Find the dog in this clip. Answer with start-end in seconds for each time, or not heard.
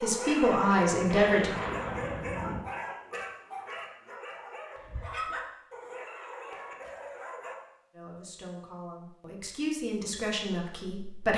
0.0-7.5.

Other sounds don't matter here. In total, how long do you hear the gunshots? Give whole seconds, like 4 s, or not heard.
2 s.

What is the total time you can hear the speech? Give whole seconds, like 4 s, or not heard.
5 s.